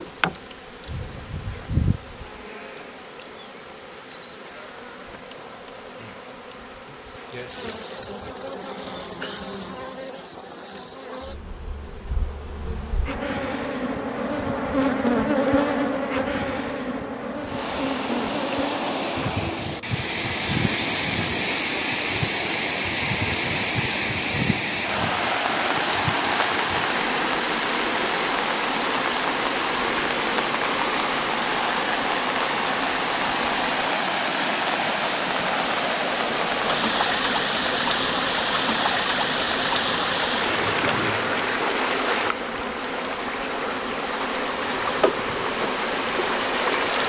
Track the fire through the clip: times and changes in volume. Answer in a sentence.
The fire can't be heard in this clip.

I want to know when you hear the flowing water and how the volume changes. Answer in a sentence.
The flowing water can be heard from 17.4 to 47.0 s, at a steady volume.